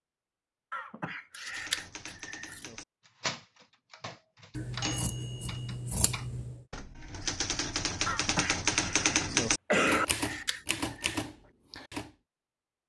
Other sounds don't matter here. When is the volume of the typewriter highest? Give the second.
9 s.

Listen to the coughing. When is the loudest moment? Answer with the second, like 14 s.
10 s.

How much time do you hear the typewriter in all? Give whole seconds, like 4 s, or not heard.
11 s.